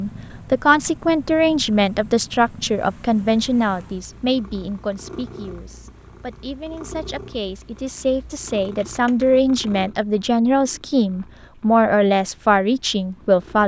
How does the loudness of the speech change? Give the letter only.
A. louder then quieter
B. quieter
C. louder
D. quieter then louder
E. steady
D.